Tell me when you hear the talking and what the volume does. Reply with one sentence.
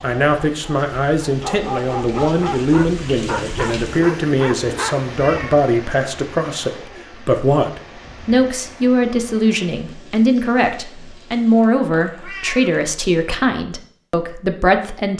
The talking can be heard from 0.0 to 15.1 s, at a steady volume.